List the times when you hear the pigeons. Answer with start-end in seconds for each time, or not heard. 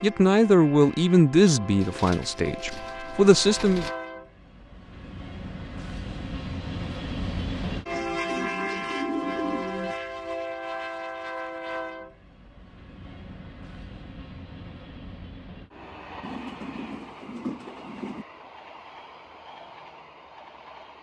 1.8-4.0, 7.9-9.9, 16.2-18.2.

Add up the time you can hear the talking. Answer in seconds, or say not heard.
4 s.